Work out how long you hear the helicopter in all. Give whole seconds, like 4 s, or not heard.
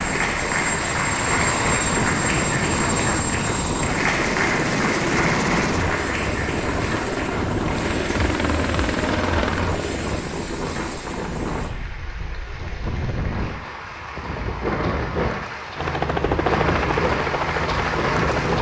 13 s.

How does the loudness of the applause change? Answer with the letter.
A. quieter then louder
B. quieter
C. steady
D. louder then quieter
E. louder
A.